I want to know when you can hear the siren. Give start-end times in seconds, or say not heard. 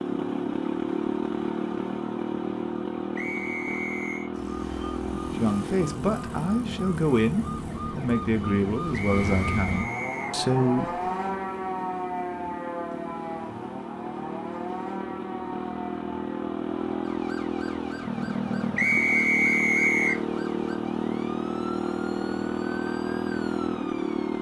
4.3-24.3.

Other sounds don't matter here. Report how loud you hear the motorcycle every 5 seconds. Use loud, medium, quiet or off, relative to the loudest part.
loud, medium, medium, loud, loud.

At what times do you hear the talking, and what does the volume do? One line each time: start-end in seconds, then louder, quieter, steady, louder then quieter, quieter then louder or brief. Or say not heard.
5.3-11.0 steady.